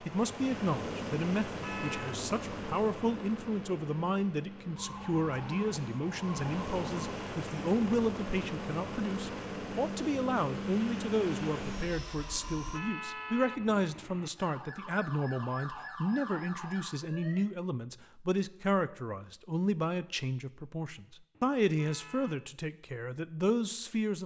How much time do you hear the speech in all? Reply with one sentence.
The speech can be heard for 24 seconds in total.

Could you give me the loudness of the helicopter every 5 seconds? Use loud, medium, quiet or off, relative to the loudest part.
loud, loud, loud, off, off.